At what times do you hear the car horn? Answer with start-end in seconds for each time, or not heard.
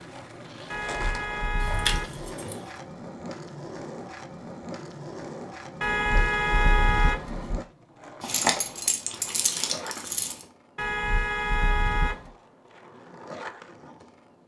0.7-2.2, 5.8-7.6, 10.8-12.3.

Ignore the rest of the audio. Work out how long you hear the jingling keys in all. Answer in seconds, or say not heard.
3 s.